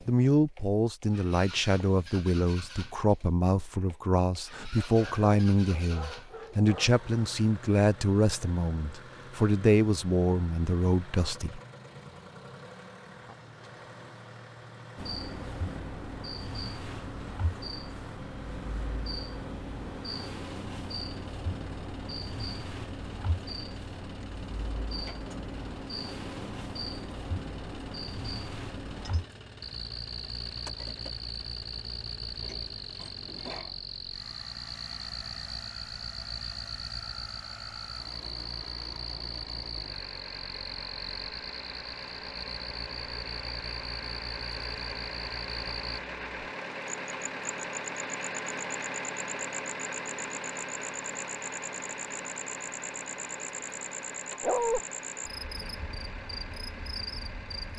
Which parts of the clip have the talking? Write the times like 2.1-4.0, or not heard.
0.1-11.6.